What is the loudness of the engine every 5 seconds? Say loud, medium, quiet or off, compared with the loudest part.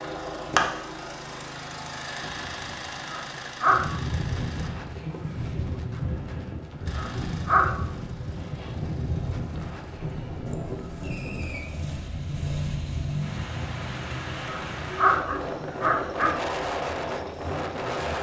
loud, quiet, loud, medium.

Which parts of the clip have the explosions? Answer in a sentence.
You can't hear the explosions here.